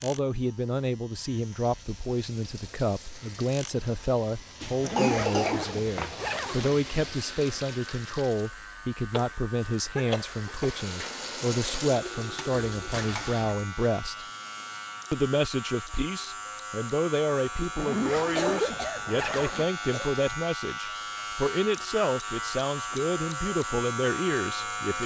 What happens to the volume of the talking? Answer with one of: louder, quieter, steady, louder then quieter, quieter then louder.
steady.